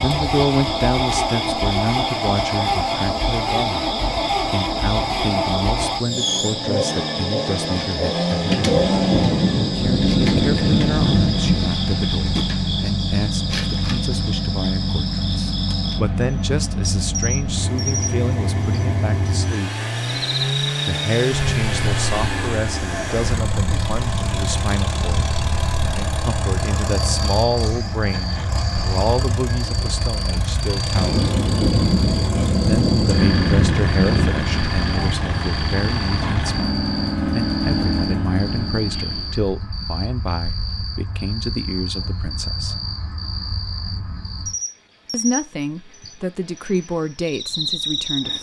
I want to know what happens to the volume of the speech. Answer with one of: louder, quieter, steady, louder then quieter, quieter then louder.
steady.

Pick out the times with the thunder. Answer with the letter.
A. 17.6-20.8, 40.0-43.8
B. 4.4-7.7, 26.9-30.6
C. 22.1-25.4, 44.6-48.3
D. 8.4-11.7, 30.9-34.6
D.